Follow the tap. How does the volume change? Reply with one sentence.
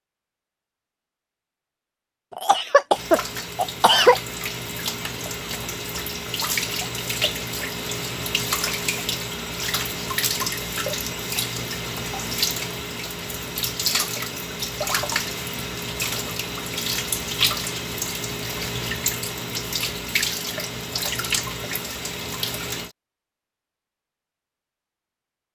The loudness of the tap stays about the same.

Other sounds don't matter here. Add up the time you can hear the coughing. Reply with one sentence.
You can hear the coughing for 2 seconds altogether.